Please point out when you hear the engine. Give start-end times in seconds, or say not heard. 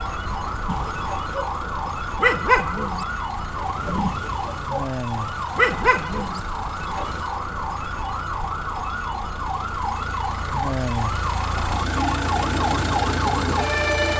0.0-14.1.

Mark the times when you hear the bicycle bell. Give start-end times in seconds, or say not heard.
not heard.